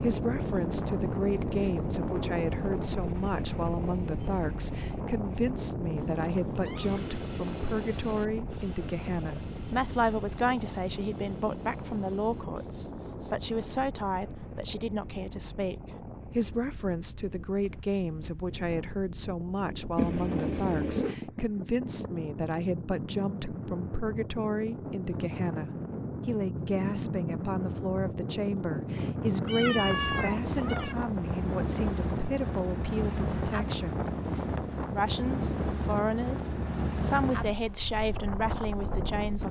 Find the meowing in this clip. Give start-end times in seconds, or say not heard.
6.0-7.0, 19.9-21.1, 29.4-30.9.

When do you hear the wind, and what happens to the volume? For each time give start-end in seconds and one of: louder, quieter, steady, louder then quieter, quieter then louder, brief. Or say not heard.
0.0-39.4 quieter then louder.